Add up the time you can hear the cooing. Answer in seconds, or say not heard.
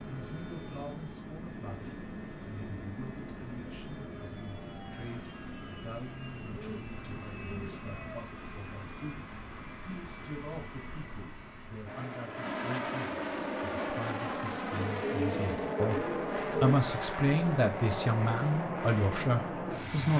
4 s.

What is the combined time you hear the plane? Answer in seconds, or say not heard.
20 s.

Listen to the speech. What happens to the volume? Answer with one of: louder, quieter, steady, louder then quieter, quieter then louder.
louder.